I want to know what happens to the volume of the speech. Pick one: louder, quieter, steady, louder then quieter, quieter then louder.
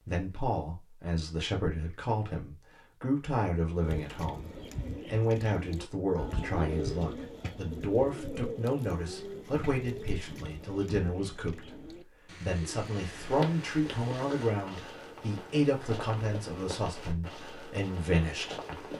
steady.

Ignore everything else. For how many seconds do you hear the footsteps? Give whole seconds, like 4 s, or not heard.
6 s.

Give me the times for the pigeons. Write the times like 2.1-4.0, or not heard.
3.8-14.4.